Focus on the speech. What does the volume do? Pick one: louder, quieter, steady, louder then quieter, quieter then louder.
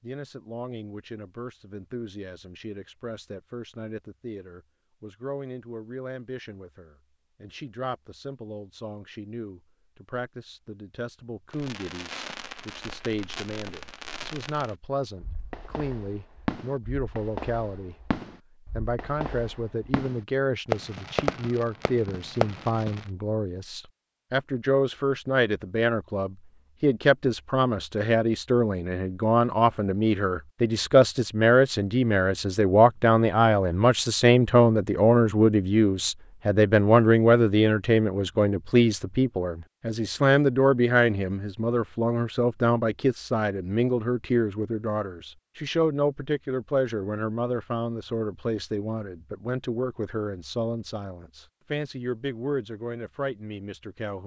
louder then quieter.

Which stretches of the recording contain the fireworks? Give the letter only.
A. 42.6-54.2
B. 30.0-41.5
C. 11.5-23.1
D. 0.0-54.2
C.